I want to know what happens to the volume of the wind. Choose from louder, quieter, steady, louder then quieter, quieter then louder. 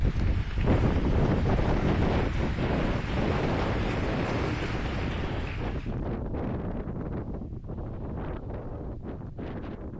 quieter.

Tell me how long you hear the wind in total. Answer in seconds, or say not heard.
10 s.